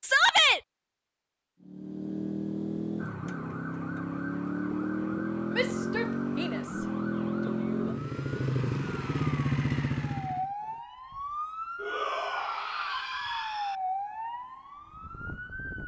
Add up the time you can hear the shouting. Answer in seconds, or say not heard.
4 s.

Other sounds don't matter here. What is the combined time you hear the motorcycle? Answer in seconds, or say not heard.
9 s.